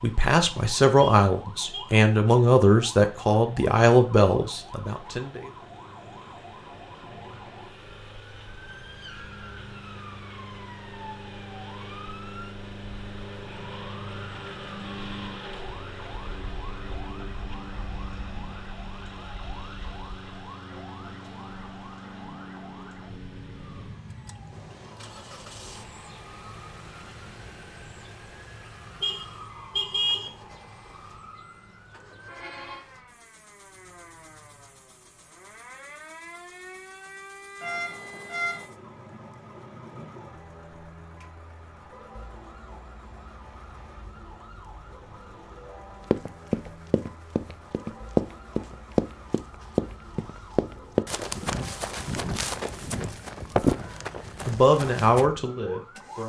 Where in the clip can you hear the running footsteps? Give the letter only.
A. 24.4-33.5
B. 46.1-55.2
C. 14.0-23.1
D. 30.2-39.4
B.